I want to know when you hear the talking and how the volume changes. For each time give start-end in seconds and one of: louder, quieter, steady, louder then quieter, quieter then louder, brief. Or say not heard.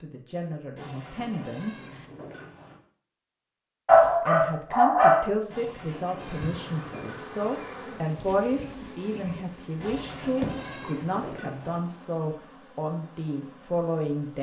0.0-2.0 brief
4.2-14.3 steady.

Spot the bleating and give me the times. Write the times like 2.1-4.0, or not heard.
0.8-2.8, 5.5-7.5, 9.8-11.8.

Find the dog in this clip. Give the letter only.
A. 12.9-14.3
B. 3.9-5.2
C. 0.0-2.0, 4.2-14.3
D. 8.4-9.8
B.